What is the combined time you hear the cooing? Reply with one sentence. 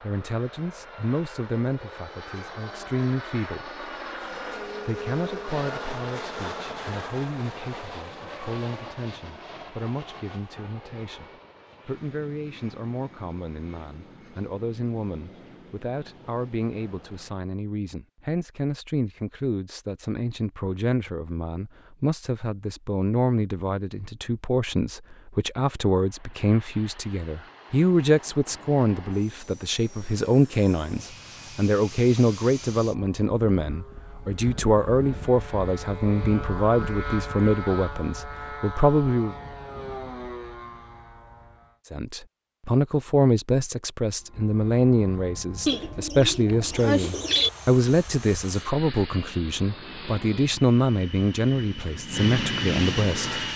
The cooing can be heard for 2 seconds in total.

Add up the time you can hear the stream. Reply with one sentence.
The stream can't be heard in this clip.